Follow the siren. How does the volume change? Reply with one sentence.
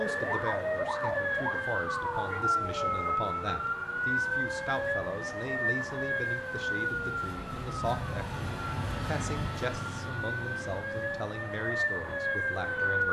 The loudness of the siren goes down, then up.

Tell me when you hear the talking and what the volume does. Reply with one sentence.
You can hear the talking from 0.0 to 13.0 s, at a steady volume.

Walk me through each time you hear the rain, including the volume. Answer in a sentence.
The rain can't be heard in this clip.